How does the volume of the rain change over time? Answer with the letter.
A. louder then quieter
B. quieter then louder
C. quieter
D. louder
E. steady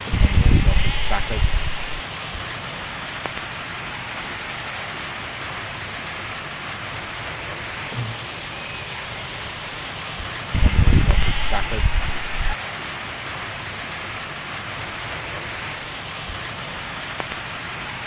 E.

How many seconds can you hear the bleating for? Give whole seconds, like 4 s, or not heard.
4 s.